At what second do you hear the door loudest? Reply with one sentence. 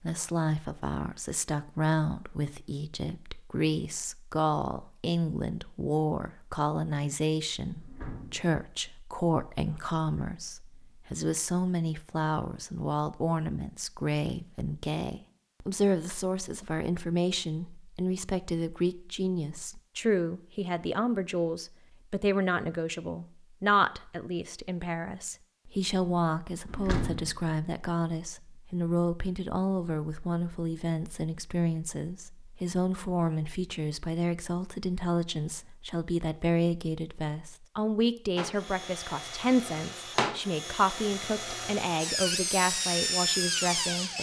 The volume of the door peaks at 27 seconds.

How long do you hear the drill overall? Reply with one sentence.
The drill can be heard for 6 seconds in total.